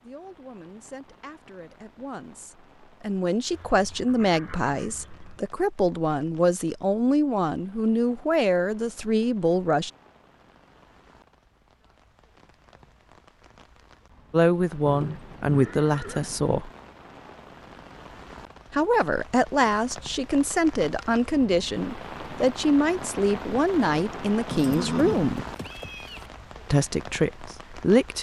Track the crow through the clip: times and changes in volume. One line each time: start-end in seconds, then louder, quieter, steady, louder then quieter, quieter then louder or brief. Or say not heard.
not heard.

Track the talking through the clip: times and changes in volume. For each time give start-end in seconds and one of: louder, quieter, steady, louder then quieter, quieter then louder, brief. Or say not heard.
0.0-9.9 louder
14.3-16.7 brief
18.7-25.4 steady
26.7-28.1 brief.